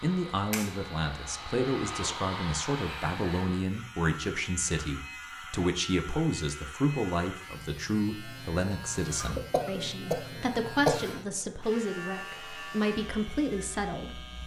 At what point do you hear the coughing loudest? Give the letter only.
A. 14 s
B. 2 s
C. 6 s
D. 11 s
D.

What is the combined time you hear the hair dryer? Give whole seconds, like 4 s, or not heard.
4 s.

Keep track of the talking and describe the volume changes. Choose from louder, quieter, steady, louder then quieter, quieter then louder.
steady.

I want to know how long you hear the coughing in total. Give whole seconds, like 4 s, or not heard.
2 s.